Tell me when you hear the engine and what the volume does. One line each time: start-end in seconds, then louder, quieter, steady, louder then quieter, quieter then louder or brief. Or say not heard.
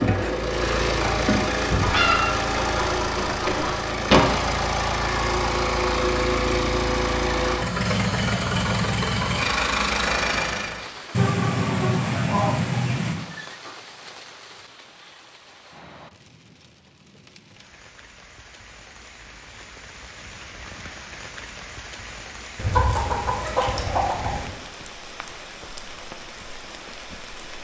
0.0-10.9 steady.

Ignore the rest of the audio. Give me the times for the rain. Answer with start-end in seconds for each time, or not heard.
10.8-27.5.